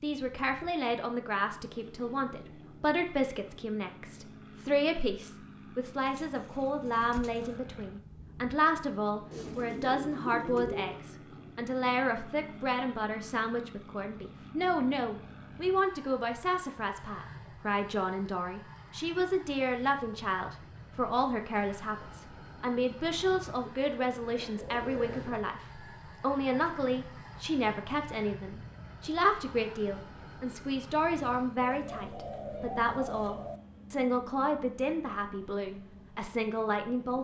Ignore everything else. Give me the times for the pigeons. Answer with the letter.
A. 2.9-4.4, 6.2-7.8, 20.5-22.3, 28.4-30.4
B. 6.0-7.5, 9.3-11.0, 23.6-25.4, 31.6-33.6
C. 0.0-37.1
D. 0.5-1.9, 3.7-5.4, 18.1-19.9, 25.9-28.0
B.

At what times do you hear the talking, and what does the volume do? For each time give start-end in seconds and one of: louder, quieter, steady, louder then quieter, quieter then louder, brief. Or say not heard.
0.0-37.1 steady.